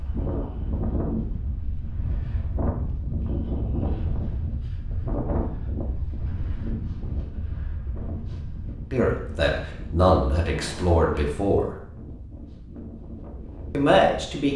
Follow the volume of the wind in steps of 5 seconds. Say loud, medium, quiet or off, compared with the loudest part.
loud, loud, medium.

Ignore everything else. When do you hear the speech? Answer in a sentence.
The speech can be heard from 8.9 to 11.8 s and from 13.7 to 14.5 s.